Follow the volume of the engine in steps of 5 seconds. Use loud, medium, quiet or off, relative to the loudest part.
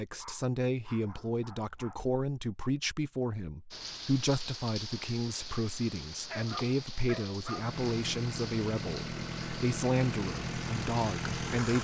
off, loud, loud.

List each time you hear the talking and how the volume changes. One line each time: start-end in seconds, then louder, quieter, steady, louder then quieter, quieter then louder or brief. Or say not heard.
0.0-11.8 steady.